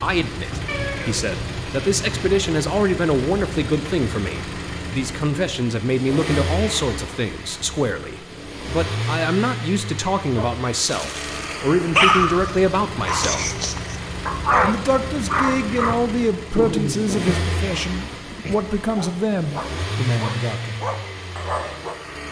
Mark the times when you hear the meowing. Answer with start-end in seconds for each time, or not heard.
0.7-2.2.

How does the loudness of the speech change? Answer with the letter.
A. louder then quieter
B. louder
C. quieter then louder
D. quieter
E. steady
E.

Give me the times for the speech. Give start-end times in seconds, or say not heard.
0.0-13.6, 14.6-20.8.